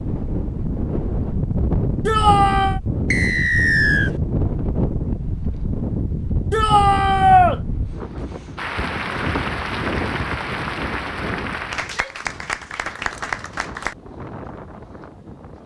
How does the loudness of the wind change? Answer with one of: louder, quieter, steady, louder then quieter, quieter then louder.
quieter.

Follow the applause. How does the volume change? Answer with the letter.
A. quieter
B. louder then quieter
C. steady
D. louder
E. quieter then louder
C.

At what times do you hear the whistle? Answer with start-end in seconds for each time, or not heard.
3.1-4.1.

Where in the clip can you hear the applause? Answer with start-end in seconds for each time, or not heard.
8.6-13.9.